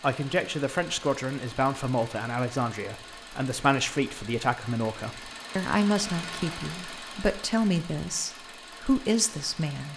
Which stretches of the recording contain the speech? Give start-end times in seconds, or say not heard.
0.0-9.9.